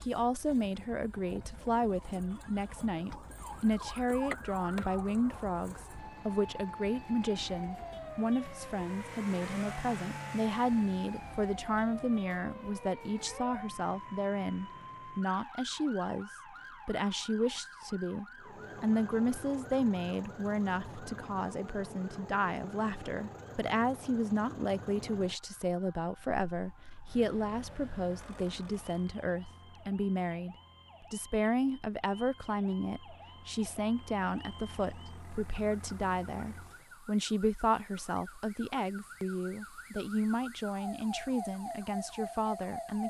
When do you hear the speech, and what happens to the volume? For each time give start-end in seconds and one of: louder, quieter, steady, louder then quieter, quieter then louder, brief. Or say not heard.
0.0-43.0 steady.